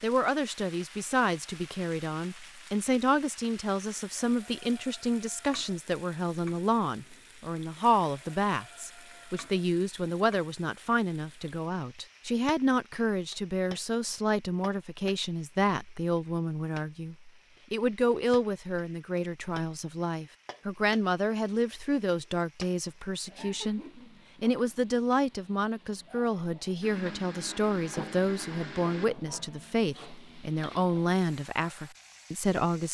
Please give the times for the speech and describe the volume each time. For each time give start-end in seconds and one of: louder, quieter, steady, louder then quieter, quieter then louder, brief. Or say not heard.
0.0-32.8 steady.